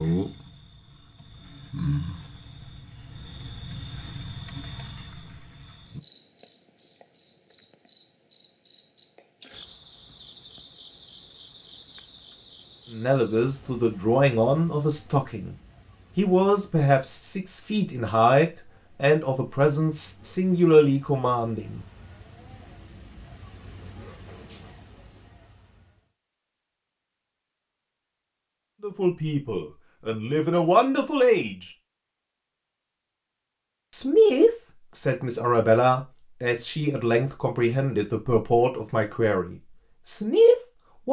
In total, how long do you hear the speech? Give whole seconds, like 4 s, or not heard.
18 s.